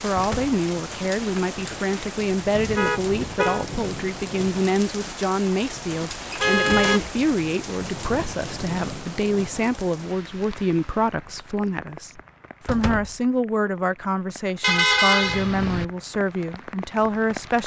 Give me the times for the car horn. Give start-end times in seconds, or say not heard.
2.5-3.6, 6.4-7.0, 14.6-15.8.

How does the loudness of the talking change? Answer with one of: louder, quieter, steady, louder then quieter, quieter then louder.
steady.